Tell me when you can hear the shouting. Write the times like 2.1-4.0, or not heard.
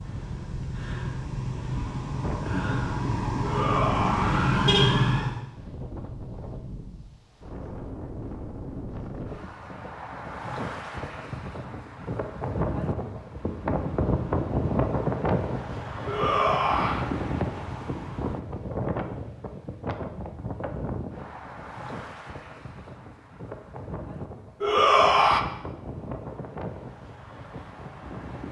3.4-5.3, 16.1-17.1, 24.6-25.4.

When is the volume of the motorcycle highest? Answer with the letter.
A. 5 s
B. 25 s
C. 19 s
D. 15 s
A.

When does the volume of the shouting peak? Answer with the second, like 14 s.
25 s.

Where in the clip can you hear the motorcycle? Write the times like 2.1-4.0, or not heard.
0.0-5.5.